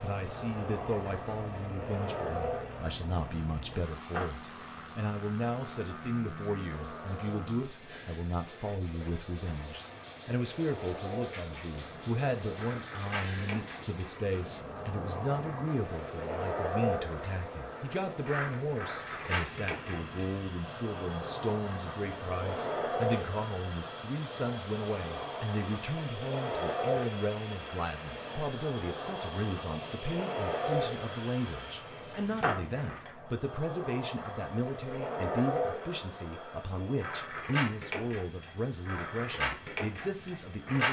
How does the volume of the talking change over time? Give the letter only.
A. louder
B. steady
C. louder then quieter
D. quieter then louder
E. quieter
B.